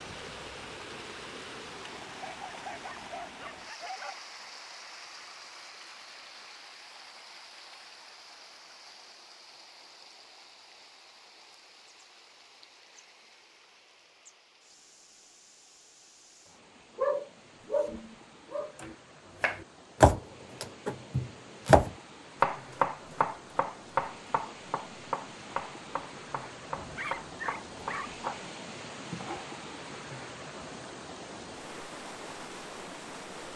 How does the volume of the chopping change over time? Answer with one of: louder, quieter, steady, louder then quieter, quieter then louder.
quieter.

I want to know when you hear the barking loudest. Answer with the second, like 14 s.
17 s.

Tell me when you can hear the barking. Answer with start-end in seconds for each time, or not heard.
2.2-4.2, 16.9-18.9, 26.7-28.3.